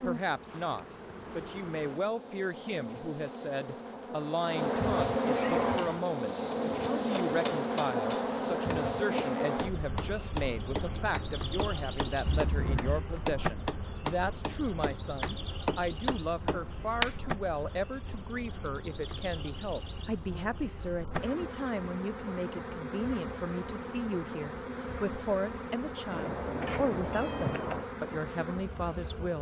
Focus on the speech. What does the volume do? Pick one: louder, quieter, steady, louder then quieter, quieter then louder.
steady.